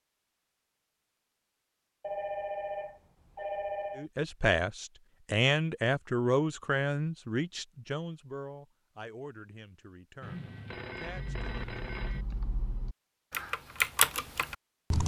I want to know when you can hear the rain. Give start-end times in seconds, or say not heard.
not heard.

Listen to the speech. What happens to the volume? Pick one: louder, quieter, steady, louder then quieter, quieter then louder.
quieter.